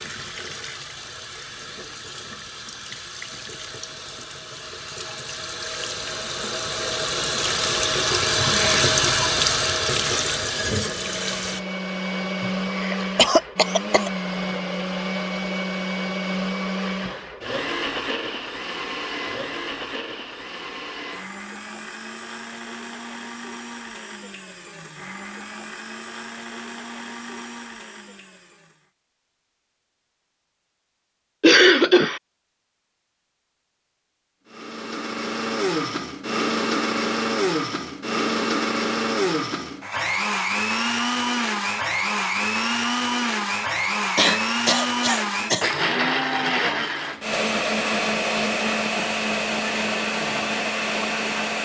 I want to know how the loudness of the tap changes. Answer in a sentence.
The loudness of the tap goes up.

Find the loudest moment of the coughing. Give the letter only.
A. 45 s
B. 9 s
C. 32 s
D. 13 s
C.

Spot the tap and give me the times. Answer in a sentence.
The tap can be heard from 0.0 to 11.6 s.